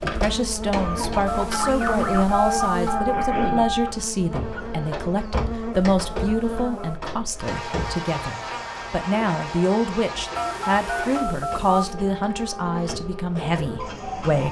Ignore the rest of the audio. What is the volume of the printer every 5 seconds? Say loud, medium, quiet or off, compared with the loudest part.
loud, medium, medium.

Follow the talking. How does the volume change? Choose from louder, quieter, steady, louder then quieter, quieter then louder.
steady.